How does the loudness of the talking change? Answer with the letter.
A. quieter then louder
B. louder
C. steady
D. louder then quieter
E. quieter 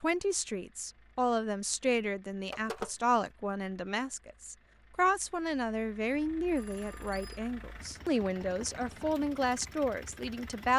C.